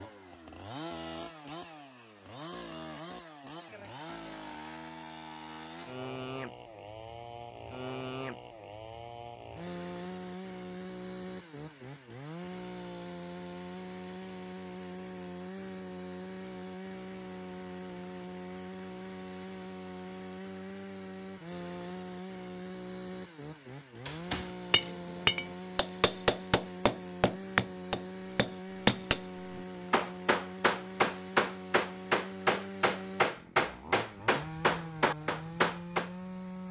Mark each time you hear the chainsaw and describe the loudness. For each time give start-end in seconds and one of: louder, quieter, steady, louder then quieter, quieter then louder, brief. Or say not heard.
0.0-36.6 steady.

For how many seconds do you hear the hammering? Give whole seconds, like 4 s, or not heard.
12 s.